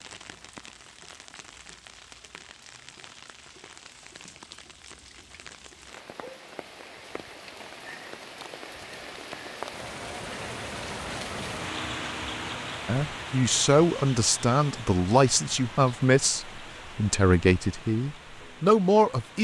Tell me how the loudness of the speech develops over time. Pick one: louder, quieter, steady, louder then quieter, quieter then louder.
steady.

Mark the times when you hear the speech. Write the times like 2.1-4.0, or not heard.
12.8-19.4.